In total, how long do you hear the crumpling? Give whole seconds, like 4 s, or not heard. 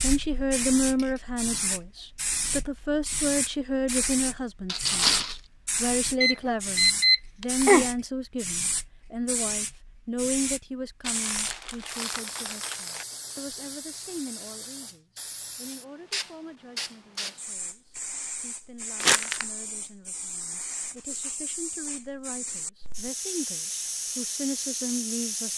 3 s.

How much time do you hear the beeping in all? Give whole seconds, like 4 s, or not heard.
2 s.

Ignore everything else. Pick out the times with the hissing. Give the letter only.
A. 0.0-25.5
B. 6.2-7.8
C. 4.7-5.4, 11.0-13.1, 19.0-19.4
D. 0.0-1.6
A.